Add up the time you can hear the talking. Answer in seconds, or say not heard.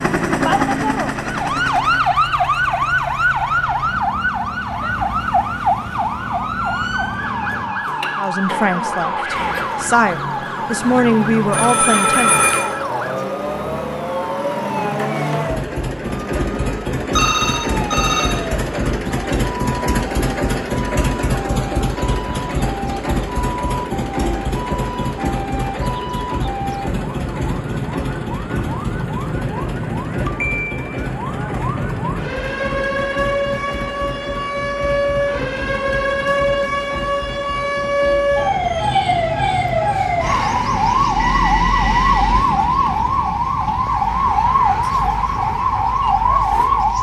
4 s.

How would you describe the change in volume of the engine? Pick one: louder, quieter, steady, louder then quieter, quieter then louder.
louder then quieter.